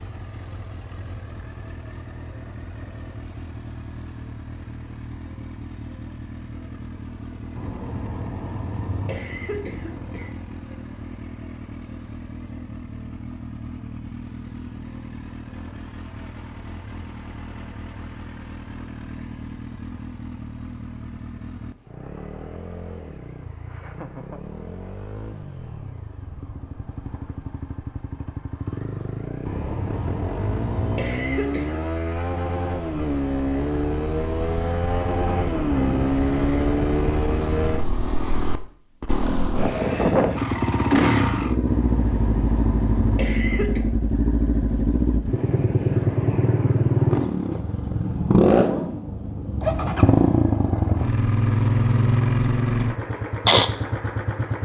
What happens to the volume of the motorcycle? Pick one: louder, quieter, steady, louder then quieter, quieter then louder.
louder.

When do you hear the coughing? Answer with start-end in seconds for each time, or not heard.
7.5-10.3, 29.4-31.9, 41.6-43.8.